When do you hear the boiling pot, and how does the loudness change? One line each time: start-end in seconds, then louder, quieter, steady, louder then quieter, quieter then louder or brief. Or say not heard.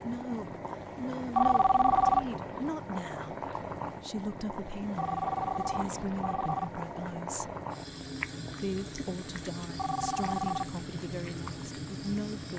0.0-12.5 steady.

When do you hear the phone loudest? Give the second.
2 s.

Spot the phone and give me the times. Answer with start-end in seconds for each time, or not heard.
1.4-2.3, 5.0-6.7, 9.8-10.8.